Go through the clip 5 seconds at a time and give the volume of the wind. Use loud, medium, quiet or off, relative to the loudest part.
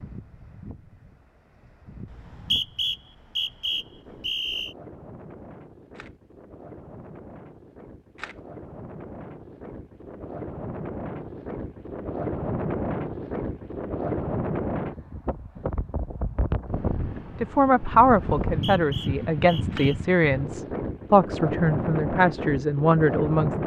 quiet, quiet, loud, loud, loud.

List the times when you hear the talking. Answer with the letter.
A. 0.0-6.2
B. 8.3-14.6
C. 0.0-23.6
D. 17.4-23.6
D.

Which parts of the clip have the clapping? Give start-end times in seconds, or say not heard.
not heard.